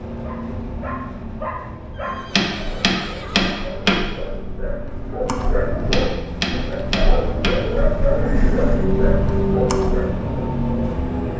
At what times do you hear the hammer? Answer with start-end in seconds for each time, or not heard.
2.3-4.0, 5.9-7.6.